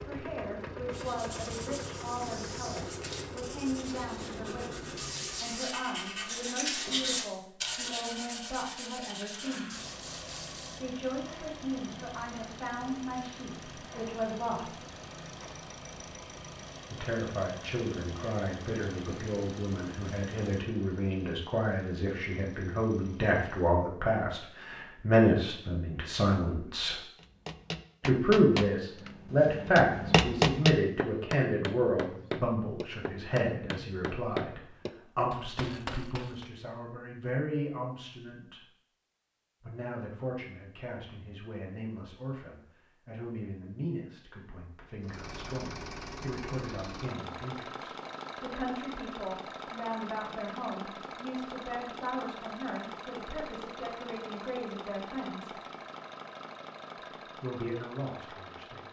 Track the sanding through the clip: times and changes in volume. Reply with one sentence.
You can hear the sanding from 0.9 to 10.8 s, getting louder then quieter.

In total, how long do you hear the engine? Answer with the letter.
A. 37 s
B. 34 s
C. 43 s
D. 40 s
B.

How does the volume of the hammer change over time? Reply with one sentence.
The loudness of the hammer goes up, then down.